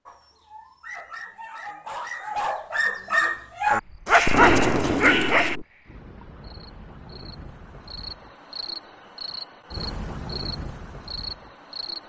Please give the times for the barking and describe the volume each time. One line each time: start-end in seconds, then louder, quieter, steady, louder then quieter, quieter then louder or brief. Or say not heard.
0.1-5.5 louder.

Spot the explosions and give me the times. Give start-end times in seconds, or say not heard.
4.2-5.7.